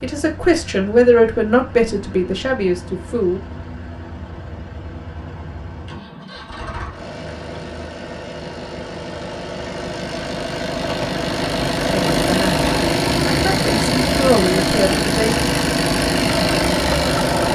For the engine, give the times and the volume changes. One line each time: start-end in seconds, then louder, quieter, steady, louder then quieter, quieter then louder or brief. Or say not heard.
0.0-17.5 louder.